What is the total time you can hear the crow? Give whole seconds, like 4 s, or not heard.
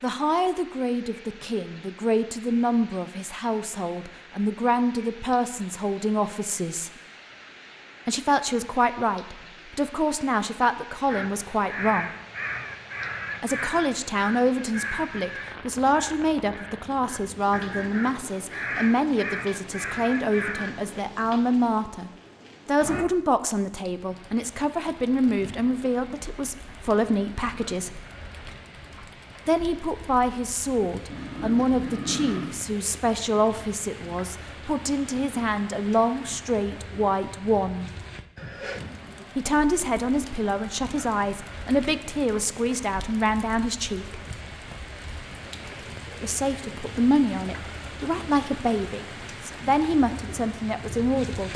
10 s.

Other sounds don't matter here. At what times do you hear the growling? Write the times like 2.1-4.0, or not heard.
31.1-32.5.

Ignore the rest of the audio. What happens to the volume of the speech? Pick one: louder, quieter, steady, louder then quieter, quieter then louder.
steady.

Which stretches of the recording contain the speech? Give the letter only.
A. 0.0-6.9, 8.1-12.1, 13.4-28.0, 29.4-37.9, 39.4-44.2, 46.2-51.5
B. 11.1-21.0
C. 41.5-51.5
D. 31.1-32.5
A.